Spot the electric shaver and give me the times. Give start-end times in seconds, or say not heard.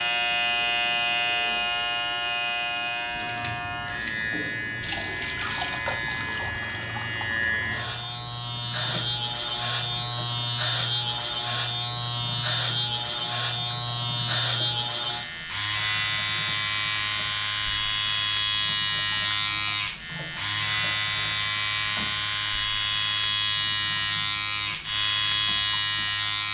0.0-26.5.